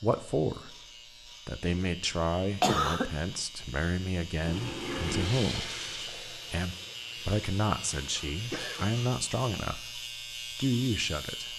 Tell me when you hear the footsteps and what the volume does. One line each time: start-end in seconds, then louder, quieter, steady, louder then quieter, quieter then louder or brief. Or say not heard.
not heard.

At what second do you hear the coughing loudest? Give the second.
3 s.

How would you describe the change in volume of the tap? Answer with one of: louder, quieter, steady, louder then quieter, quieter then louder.
quieter.